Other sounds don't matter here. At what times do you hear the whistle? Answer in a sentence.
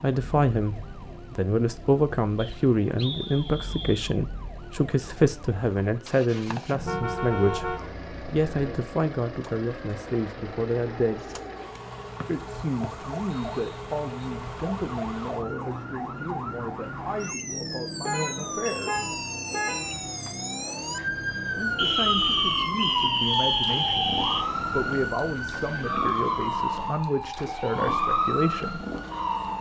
You can hear the whistle from 2.4 to 4.0 s, from 12.2 to 14.3 s and from 21.8 to 24.4 s.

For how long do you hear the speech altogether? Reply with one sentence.
You can hear the speech for 25 seconds altogether.